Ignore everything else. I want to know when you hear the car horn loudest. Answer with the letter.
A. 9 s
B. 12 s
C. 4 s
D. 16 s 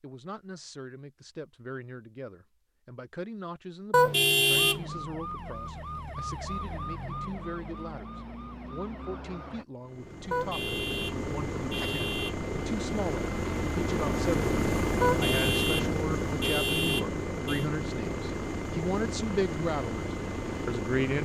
C.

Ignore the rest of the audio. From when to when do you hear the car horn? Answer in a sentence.
You can hear the car horn from 3.9 to 5.1 s, from 10.3 to 12.3 s and from 15.0 to 17.6 s.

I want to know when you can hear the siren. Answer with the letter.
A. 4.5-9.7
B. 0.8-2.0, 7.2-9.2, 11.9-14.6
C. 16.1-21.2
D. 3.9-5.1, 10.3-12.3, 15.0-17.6
A.